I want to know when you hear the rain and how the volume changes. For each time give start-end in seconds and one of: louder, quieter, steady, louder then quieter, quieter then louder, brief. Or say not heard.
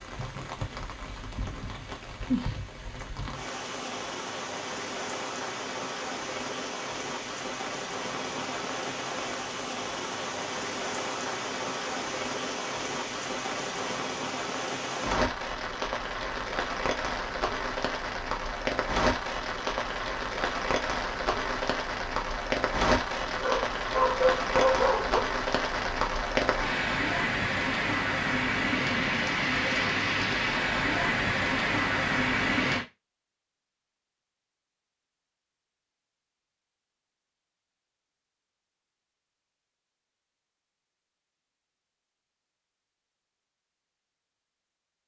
0.0-32.9 louder.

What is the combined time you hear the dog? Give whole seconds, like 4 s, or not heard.
2 s.